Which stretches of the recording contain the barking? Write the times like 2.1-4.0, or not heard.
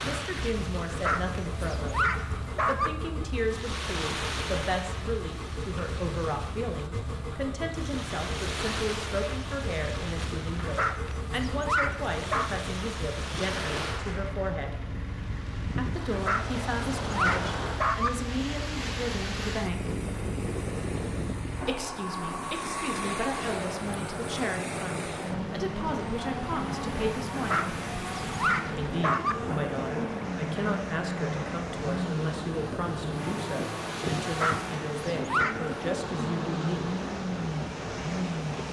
0.9-2.9, 10.6-12.6, 16.1-18.1, 27.4-29.4, 34.2-35.7.